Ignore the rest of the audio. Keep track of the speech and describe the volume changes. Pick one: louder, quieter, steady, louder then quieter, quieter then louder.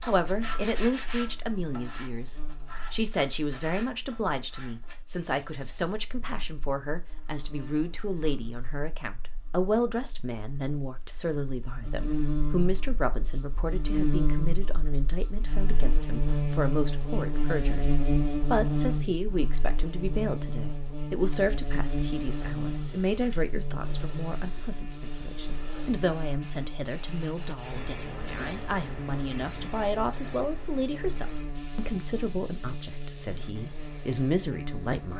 steady.